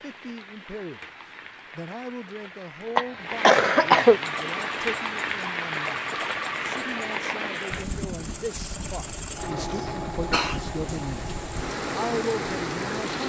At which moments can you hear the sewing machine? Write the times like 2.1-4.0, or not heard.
4.2-13.2.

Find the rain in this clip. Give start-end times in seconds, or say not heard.
0.0-13.2.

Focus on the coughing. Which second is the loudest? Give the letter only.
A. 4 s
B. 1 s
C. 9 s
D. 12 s
A.